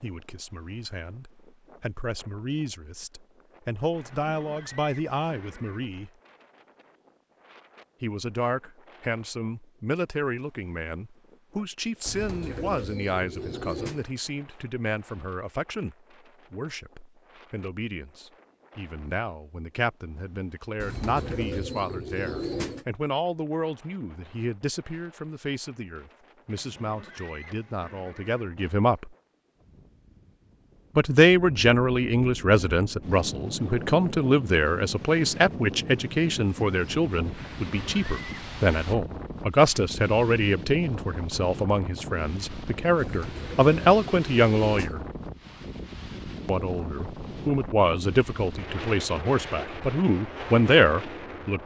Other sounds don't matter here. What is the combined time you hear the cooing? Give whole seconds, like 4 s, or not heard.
6 s.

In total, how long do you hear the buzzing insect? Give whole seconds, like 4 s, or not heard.
not heard.